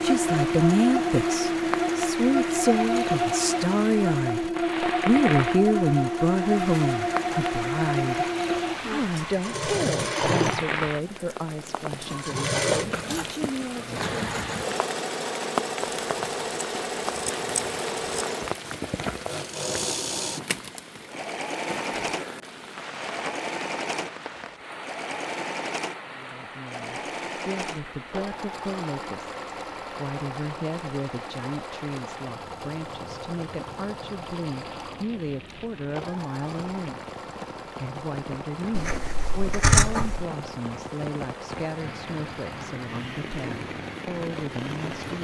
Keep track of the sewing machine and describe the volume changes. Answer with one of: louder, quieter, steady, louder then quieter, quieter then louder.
quieter.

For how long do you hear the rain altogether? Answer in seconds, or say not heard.
45 s.